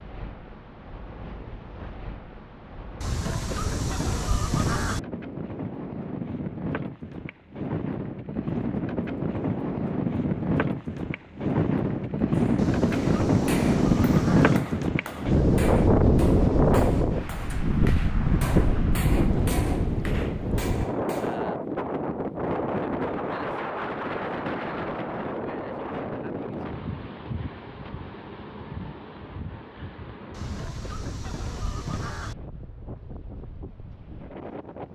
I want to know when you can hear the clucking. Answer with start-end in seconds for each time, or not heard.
3.0-5.0, 12.6-14.6, 30.3-32.4.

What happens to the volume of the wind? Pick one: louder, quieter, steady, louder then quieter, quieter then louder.
louder then quieter.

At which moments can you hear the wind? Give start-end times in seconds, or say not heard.
0.0-34.9.